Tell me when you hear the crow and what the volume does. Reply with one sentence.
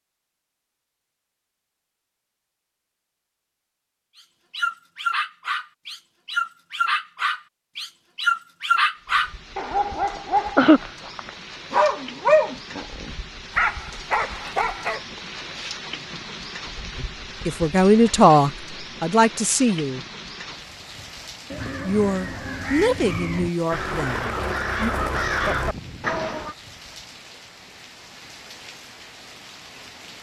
You can hear the crow from 21.5 to 26.6 s, getting louder.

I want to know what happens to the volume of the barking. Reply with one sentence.
The loudness of the barking goes up, then down.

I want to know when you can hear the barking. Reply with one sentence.
You can hear the barking from 4.5 to 15.0 s.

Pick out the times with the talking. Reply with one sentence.
The talking can be heard from 16.9 to 20.1 s and from 21.9 to 24.9 s.